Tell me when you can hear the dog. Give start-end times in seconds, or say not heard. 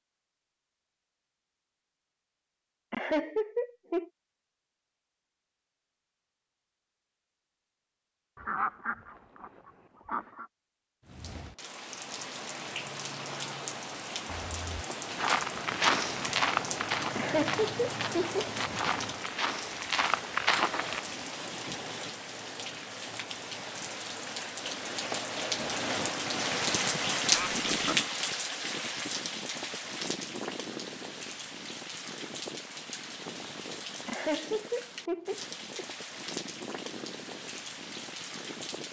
not heard.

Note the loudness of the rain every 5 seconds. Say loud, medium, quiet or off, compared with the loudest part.
off, off, medium, medium, medium, loud, medium, medium.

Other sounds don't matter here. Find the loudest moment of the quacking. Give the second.
9 s.